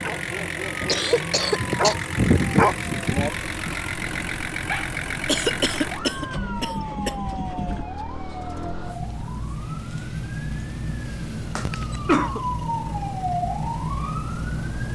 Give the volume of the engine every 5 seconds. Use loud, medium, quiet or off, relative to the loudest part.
loud, loud, quiet.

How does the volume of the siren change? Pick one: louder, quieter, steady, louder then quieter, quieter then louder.
louder.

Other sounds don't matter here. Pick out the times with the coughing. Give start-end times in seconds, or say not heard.
0.8-1.9, 5.2-7.1, 11.7-12.4.